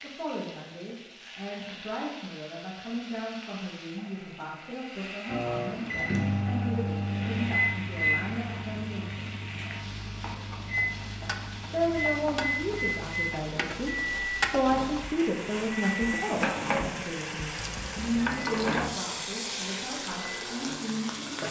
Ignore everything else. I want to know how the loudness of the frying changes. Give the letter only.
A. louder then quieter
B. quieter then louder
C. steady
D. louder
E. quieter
D.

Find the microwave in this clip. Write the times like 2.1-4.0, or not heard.
5.2-21.4.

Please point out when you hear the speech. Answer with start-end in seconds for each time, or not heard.
0.0-9.3, 11.7-21.4.